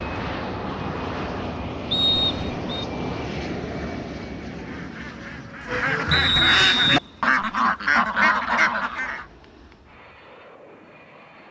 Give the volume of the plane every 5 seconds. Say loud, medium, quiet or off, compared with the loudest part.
loud, quiet, quiet.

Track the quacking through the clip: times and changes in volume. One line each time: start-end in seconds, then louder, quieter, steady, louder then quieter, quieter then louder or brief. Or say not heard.
4.5-9.2 louder.